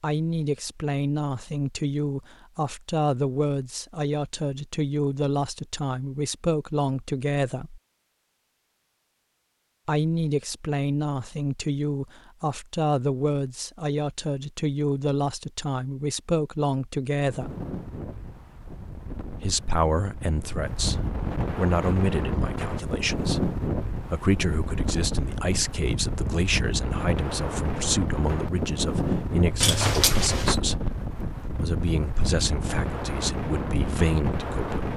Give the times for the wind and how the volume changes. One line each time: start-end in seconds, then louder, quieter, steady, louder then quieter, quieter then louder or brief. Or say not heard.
17.2-34.9 louder.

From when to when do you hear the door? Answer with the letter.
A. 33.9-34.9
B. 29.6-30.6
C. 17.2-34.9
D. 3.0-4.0
B.